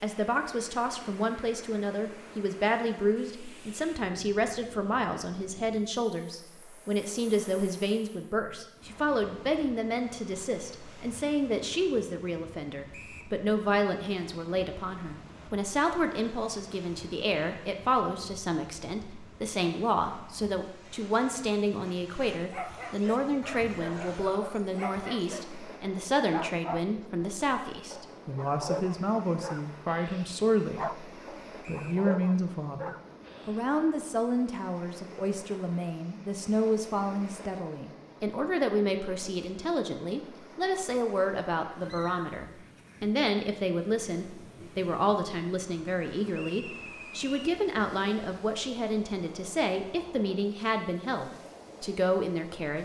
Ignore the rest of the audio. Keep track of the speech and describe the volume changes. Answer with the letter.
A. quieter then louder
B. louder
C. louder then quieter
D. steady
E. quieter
D.